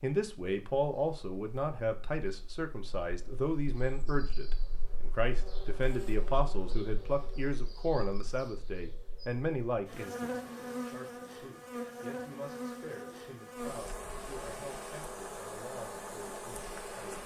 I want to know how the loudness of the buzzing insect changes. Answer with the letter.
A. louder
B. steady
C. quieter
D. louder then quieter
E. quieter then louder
A.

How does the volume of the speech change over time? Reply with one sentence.
The volume of the speech goes down.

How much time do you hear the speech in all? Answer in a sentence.
The speech can be heard for 17 seconds in total.